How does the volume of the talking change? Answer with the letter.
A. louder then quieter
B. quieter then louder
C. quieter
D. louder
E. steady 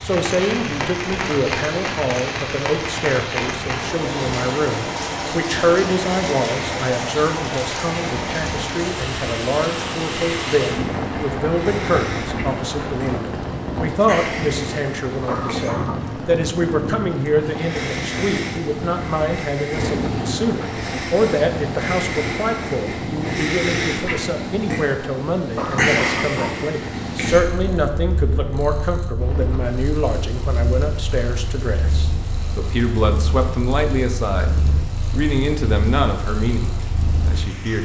E.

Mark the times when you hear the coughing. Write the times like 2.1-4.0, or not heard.
15.2-16.1, 25.6-26.7.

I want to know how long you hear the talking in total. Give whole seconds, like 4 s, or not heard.
38 s.